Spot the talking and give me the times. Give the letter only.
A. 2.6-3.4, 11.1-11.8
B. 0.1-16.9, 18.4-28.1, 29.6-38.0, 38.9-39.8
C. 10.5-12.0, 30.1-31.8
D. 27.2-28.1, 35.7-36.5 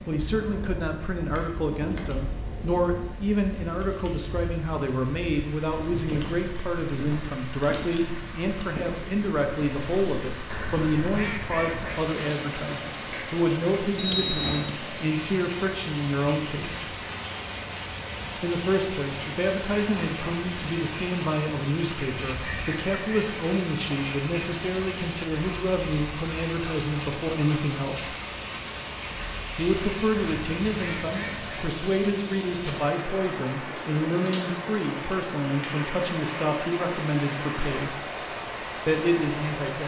B.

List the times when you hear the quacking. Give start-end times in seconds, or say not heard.
10.5-12.0, 30.1-31.8.